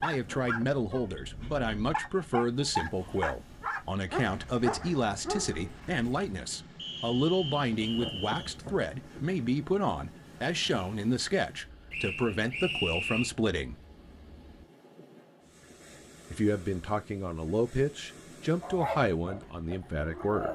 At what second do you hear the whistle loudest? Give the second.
13 s.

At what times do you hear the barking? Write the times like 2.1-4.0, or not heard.
0.0-6.3, 18.6-20.5.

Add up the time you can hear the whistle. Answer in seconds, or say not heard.
3 s.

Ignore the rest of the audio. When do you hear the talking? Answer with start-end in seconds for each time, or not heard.
0.0-13.8, 16.3-20.5.